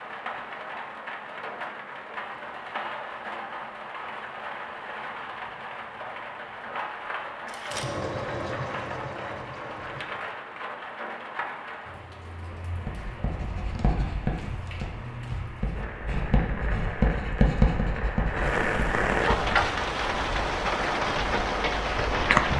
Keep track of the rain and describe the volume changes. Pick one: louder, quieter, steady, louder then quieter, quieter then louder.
louder.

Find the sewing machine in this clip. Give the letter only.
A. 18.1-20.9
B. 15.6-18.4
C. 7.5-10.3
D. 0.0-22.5
C.